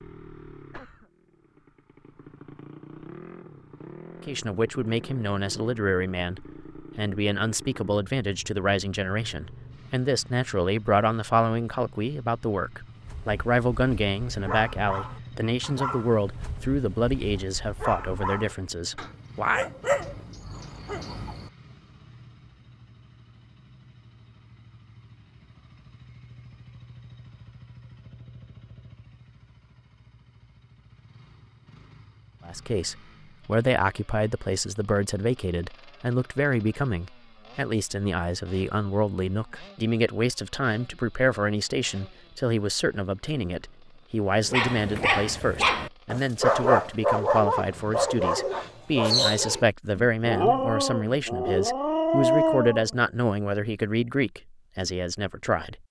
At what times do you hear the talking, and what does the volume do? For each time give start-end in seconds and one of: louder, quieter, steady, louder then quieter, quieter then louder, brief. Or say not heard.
4.2-19.6 steady
32.5-55.8 steady.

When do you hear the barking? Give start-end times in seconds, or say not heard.
12.9-21.5, 44.5-52.9.